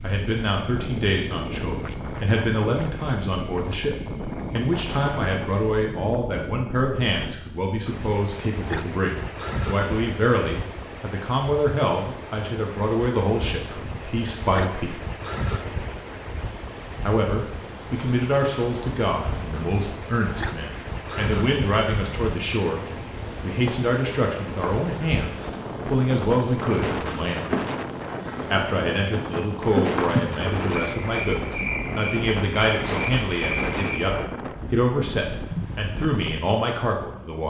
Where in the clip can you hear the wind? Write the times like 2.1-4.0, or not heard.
0.0-37.4.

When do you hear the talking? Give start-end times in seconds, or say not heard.
0.0-14.9, 17.0-27.5, 28.5-37.4.